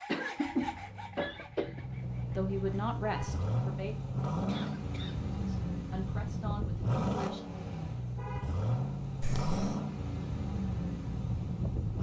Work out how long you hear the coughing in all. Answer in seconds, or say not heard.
3 s.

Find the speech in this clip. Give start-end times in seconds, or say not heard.
2.3-4.0, 5.4-7.5.